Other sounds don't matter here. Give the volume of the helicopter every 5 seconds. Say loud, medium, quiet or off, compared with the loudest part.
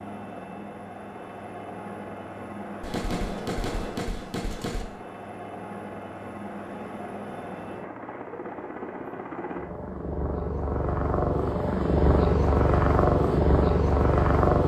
quiet, quiet, loud.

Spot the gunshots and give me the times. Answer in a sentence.
The gunshots can be heard from 2.8 to 4.8 s.